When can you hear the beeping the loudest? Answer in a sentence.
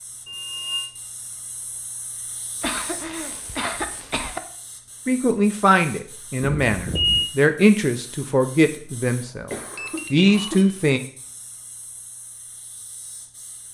The volume of the beeping peaks at 7 seconds.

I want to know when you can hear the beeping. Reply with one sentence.
The beeping can be heard from 0.2 to 0.9 s, from 6.4 to 7.3 s and from 9.8 to 10.7 s.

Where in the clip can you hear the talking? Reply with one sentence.
You can hear the talking from 5.0 to 11.0 s.